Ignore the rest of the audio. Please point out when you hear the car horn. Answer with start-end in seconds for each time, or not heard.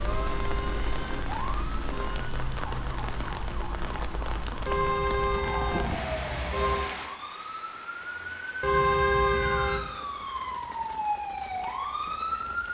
0.0-2.3, 4.7-6.9, 8.6-9.9.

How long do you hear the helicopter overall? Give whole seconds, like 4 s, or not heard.
not heard.